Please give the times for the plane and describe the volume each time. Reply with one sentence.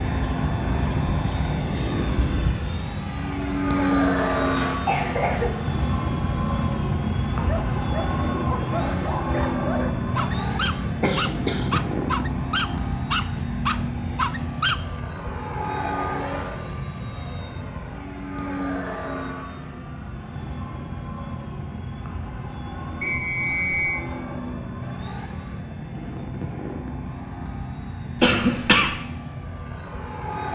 You can hear the plane from 0.0 to 30.5 s, getting quieter.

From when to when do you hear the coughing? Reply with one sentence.
You can hear the coughing from 4.4 to 5.5 s, from 11.0 to 11.9 s and from 28.2 to 29.0 s.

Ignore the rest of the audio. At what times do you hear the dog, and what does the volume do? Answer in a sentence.
The dog can be heard from 7.3 to 14.9 s, getting louder.